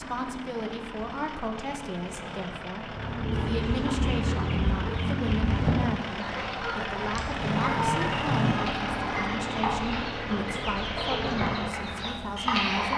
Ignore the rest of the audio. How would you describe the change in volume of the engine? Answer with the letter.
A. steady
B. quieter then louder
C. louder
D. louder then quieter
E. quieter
D.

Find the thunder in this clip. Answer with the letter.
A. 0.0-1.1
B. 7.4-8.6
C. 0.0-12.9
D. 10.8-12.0
B.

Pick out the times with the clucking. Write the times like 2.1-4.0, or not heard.
2.9-12.9.